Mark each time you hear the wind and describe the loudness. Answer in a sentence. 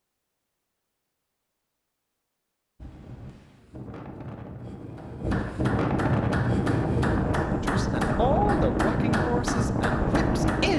You can hear the wind from 2.8 to 10.7 s, getting louder.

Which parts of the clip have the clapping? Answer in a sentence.
You can hear the clapping from 5.0 to 10.7 s.